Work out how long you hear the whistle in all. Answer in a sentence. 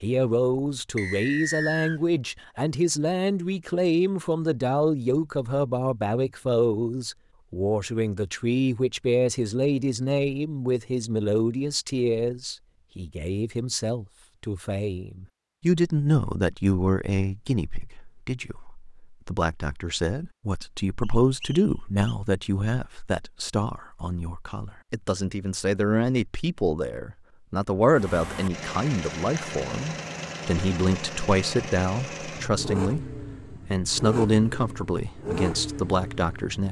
You can hear the whistle for 2 seconds altogether.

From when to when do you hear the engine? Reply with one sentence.
You can hear the engine from 27.9 to 36.6 s.